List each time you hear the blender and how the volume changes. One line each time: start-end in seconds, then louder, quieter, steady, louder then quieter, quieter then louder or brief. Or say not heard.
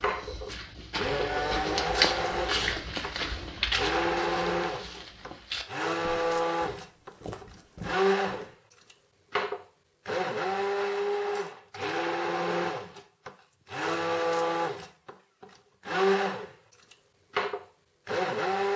0.0-18.7 steady.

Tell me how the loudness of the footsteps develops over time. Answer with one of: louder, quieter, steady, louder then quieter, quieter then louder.
louder then quieter.